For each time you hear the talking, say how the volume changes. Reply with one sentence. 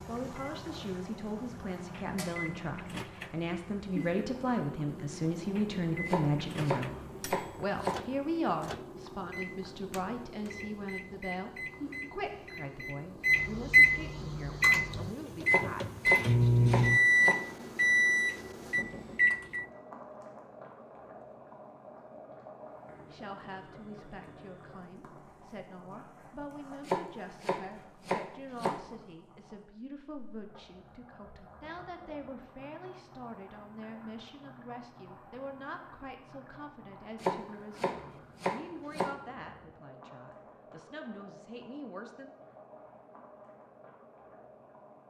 You can hear the talking from 0.1 to 16.6 s, getting louder then quieter; and from 23.1 to 42.3 s, at a steady volume.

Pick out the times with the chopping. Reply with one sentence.
You can hear the chopping from 6.0 to 8.0 s, from 15.4 to 17.4 s, from 26.9 to 28.8 s and from 37.2 to 39.1 s.